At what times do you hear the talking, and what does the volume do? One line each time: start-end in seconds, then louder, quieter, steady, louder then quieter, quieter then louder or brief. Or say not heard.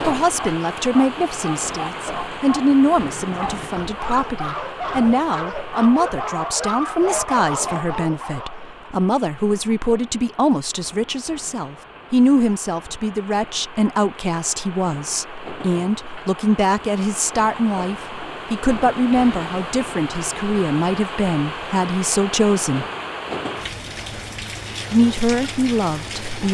0.0-22.9 steady
24.9-26.5 brief.